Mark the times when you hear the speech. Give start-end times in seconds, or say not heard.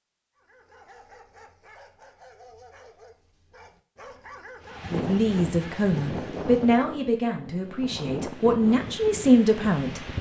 4.9-10.0.